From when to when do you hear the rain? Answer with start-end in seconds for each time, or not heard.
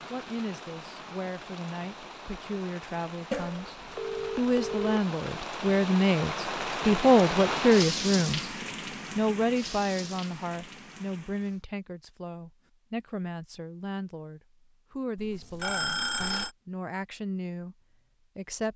0.0-11.6.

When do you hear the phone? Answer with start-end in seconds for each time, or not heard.
3.3-5.0, 15.2-16.5.